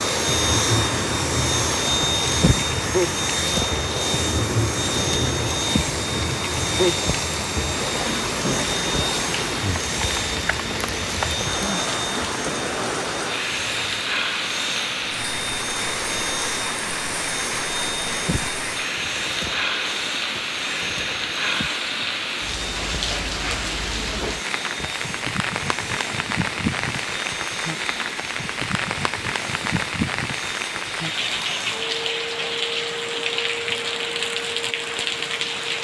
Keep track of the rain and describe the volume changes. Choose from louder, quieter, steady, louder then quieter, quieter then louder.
steady.